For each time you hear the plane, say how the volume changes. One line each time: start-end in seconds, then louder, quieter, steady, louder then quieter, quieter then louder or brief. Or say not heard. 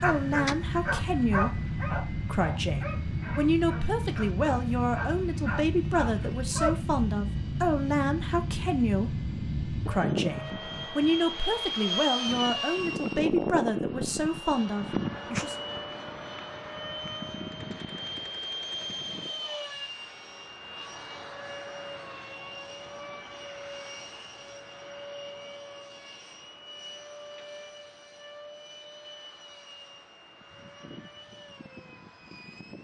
0.0-32.7 quieter.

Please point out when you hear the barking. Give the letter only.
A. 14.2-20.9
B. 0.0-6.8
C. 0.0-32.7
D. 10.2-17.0
B.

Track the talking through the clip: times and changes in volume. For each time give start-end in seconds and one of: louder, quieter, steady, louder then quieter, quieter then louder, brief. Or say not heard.
0.0-15.6 steady.